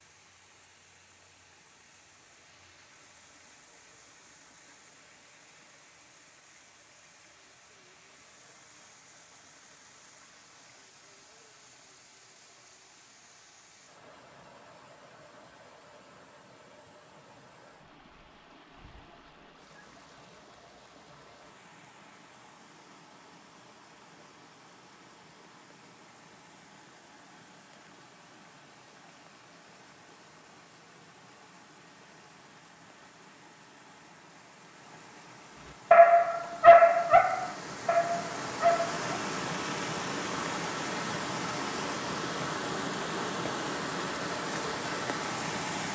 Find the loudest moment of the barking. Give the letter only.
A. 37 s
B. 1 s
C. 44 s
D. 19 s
A.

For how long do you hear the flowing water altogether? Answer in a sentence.
You can hear the flowing water for 46 seconds altogether.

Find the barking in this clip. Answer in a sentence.
The barking can be heard from 35.9 to 39.0 s.